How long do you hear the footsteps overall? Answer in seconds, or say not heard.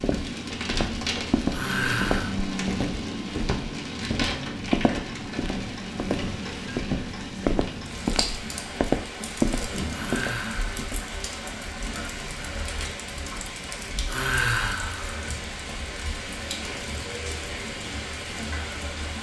11 s.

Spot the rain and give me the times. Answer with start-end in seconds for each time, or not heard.
0.0-19.1.